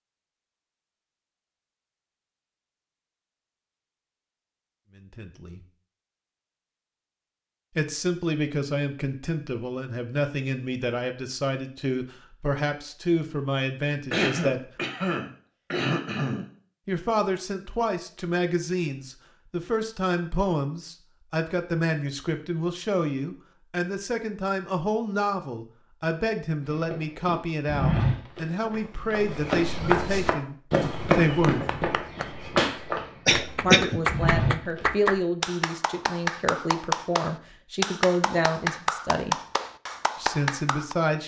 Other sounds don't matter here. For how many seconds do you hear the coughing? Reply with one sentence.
The coughing can be heard for 3 seconds in total.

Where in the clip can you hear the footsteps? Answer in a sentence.
You can hear the footsteps from 26.6 to 34.9 s.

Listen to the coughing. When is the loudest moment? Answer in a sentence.
The volume of the coughing peaks at 34 seconds.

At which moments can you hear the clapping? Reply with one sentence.
The clapping can be heard from 31.4 to 41.0 s.